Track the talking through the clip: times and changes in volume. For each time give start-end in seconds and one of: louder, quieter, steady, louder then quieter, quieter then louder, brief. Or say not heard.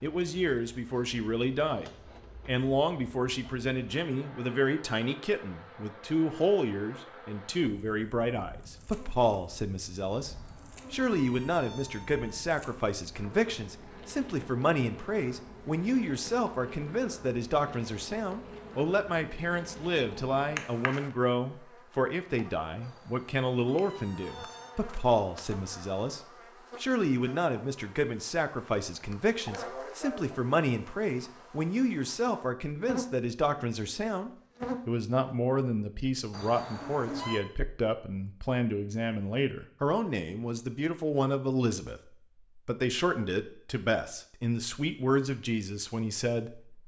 0.0-26.2 steady
26.8-46.8 steady.